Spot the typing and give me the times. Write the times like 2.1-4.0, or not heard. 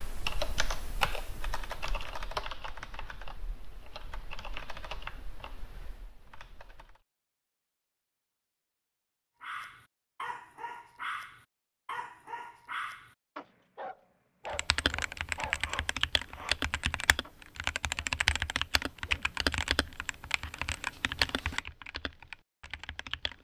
0.0-7.0, 14.4-23.3.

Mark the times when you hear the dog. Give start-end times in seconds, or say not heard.
9.4-17.4.